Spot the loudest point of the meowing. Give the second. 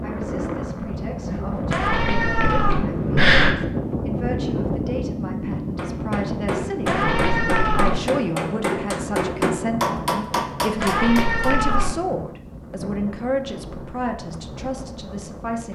3 s.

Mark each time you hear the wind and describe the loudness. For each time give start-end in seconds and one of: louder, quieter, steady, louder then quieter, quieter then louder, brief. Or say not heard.
0.0-15.6 quieter.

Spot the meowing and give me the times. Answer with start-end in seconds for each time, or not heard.
1.7-3.5, 6.8-8.2, 10.8-12.0.